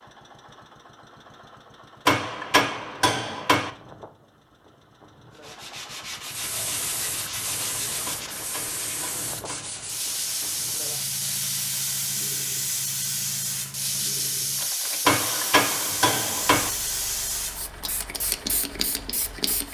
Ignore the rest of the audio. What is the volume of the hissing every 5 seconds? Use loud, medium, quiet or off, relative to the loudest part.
off, medium, loud, loud.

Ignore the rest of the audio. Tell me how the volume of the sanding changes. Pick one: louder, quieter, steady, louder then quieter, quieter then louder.
steady.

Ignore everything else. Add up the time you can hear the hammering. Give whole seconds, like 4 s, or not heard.
5 s.